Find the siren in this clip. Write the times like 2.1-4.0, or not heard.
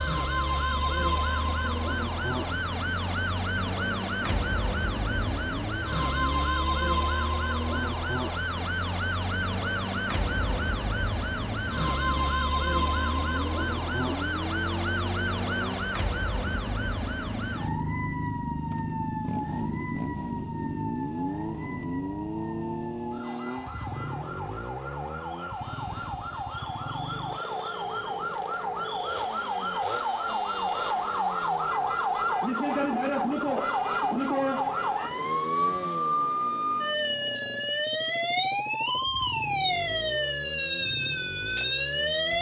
0.0-42.3.